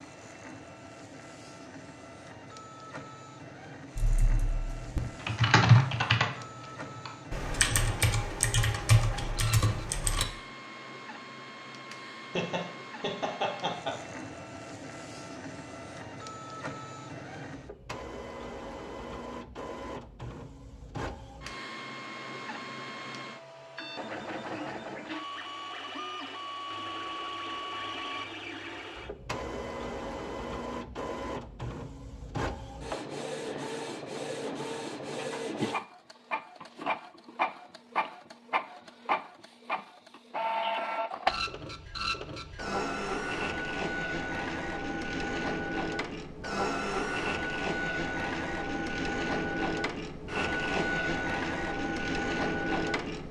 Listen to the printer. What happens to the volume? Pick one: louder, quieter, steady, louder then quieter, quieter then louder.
louder.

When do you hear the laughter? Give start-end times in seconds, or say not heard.
12.3-14.2.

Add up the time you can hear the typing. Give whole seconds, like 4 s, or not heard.
6 s.